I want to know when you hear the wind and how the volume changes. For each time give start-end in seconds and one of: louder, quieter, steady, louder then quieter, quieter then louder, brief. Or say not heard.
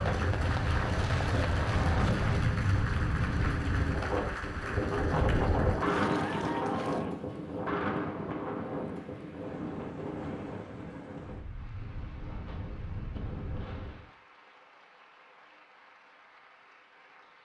0.0-14.1 quieter.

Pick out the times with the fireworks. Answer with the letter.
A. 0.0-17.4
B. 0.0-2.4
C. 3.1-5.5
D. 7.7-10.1
B.